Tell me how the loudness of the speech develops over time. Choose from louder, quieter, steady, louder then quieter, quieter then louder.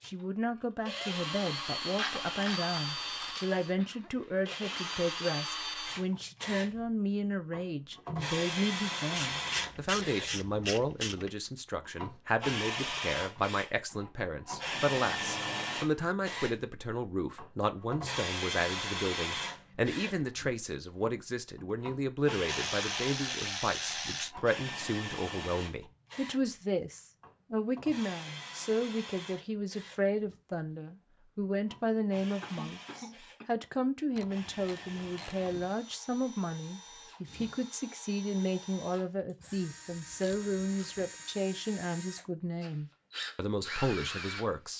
steady.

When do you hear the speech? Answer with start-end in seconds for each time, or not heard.
0.1-44.7.